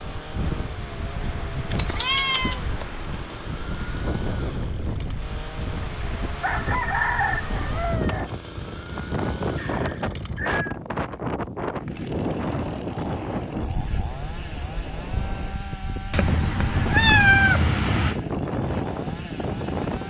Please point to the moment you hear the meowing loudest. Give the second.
17 s.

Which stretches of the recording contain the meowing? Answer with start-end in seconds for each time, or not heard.
1.8-2.6, 9.6-10.8, 16.1-18.1.